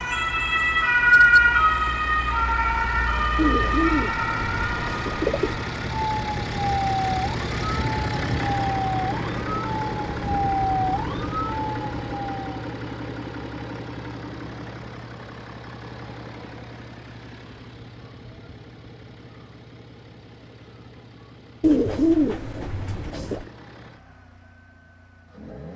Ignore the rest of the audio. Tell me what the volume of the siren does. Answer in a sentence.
The loudness of the siren goes down.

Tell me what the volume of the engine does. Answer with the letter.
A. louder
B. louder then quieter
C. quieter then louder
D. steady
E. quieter
B.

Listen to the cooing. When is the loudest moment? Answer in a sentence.
The volume of the cooing peaks at 22 seconds.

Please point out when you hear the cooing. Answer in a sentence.
The cooing can be heard from 3.4 to 5.6 s and from 21.6 to 23.5 s.